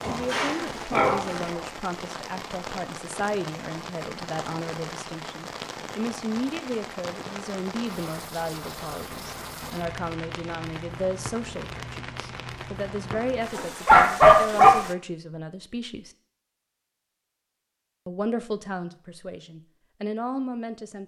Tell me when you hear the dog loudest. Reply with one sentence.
The loudest moment of the dog is at 14 seconds.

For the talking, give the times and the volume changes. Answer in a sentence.
You can hear the talking from 0.0 to 16.1 s, at a steady volume; and briefly from 18.1 to 21.0 s.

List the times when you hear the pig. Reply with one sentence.
The pig can be heard from 0.0 to 1.5 s.